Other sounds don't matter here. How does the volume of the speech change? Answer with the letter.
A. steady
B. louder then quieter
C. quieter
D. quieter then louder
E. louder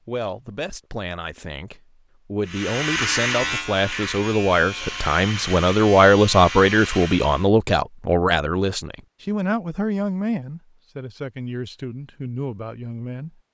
B.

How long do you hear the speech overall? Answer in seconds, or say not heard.
13 s.